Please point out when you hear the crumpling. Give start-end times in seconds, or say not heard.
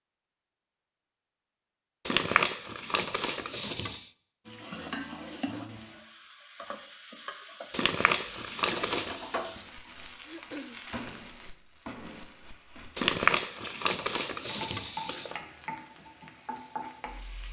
2.0-4.0, 7.7-9.2, 12.9-15.4.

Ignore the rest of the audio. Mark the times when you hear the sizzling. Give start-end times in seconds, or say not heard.
4.5-17.4.